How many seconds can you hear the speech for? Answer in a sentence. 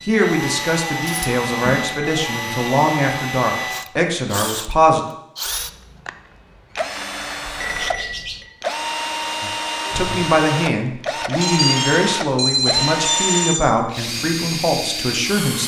You can hear the speech for 11 seconds altogether.